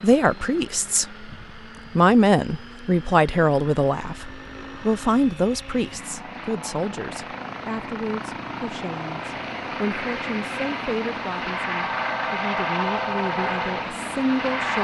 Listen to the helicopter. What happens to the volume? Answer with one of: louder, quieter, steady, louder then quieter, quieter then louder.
louder.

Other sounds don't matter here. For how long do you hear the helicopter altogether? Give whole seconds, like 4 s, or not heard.
15 s.